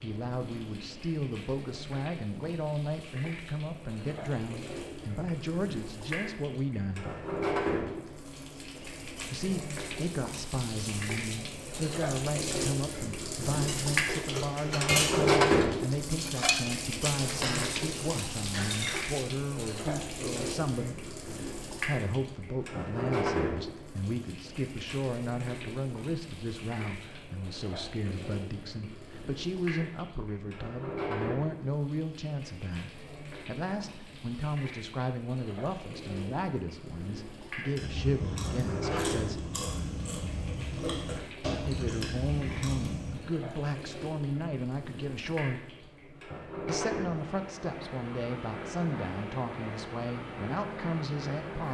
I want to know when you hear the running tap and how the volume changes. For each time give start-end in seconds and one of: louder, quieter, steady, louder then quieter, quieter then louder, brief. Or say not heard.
0.0-51.6 louder then quieter.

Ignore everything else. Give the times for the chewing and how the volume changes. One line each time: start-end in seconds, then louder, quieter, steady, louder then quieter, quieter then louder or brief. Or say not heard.
37.8-43.2 steady.